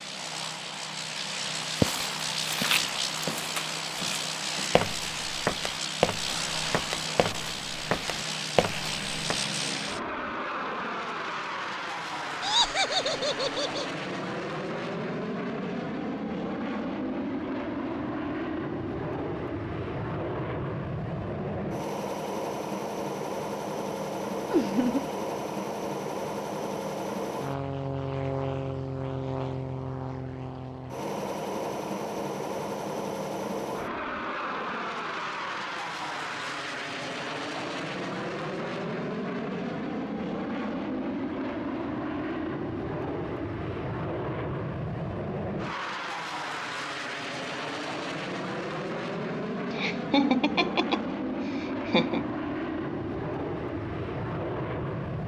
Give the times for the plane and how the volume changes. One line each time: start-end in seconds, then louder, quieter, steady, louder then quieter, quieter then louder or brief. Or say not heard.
0.0-55.2 steady.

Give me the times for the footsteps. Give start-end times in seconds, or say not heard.
1.8-9.4.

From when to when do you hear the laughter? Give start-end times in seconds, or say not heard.
12.4-13.8, 24.5-25.1, 49.7-52.2.